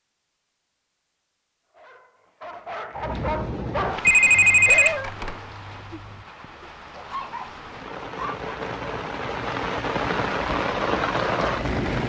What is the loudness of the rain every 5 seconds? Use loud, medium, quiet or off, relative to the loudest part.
medium, medium, loud.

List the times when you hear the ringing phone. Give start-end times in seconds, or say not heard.
4.0-5.0.